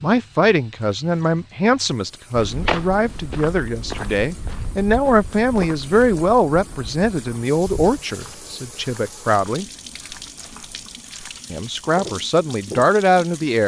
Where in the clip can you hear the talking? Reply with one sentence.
You can hear the talking from 0.0 to 9.7 s and from 11.5 to 13.6 s.